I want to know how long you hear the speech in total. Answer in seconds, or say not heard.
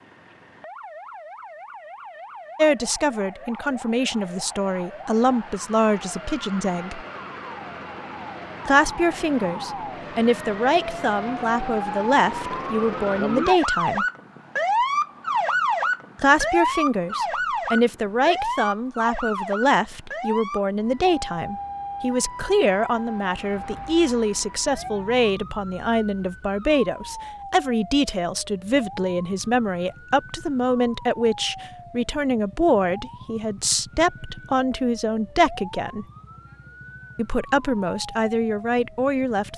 32 s.